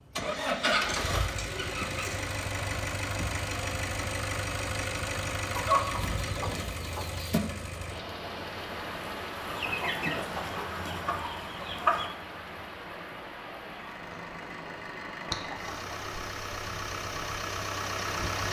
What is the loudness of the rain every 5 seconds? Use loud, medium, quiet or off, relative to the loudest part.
off, loud, loud, loud.